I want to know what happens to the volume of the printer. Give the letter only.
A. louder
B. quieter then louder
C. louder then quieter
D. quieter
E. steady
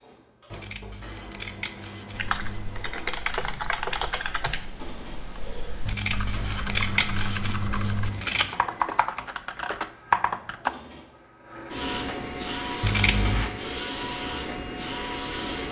A.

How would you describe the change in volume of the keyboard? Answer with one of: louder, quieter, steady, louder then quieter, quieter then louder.
quieter then louder.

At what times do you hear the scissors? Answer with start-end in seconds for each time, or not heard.
0.5-2.9, 5.8-8.6, 12.8-13.5.